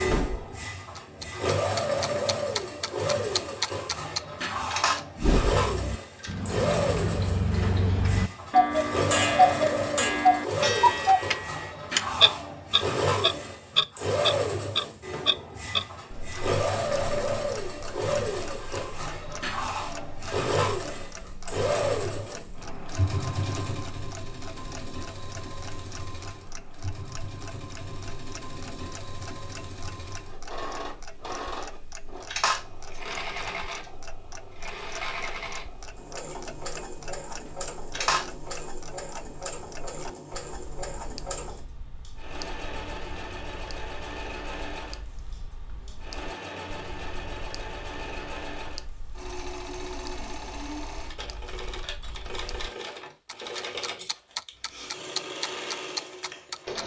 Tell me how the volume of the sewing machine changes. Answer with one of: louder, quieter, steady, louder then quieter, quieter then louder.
quieter.